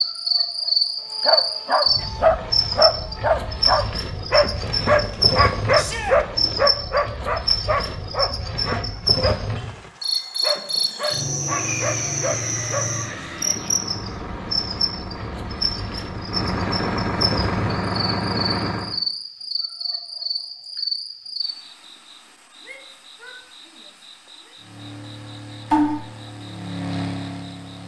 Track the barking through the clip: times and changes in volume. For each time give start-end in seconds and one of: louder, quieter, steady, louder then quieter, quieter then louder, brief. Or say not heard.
1.2-12.9 quieter.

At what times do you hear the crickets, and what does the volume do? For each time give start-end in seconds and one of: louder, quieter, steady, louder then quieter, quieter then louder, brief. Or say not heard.
0.0-27.8 quieter.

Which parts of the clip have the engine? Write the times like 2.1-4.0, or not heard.
11.4-18.9, 24.6-27.8.